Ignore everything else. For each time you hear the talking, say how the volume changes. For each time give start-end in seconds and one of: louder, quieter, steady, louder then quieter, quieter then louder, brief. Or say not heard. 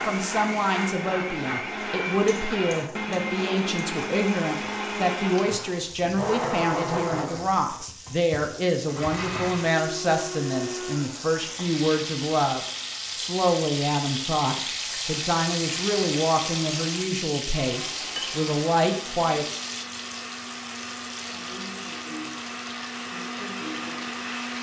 0.1-19.6 steady.